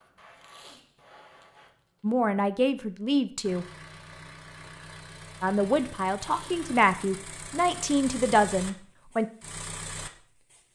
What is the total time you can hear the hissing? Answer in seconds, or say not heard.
2 s.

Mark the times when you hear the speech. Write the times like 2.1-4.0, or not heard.
2.0-3.6, 5.4-9.2.